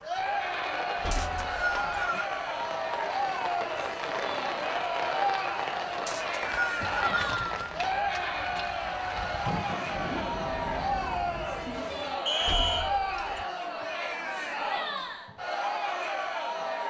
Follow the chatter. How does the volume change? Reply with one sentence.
The volume of the chatter stays about the same.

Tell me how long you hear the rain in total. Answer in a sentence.
You can hear the rain for 12 seconds altogether.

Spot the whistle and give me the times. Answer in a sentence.
The whistle can be heard from 1.1 to 2.3 s, from 6.0 to 7.5 s and from 12.2 to 12.9 s.